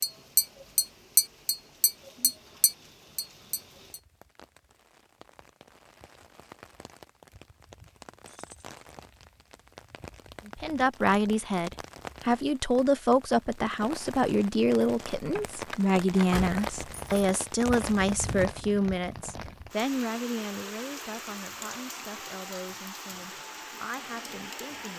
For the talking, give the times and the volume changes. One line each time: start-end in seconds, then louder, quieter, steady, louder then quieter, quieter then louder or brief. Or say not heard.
10.4-24.9 quieter.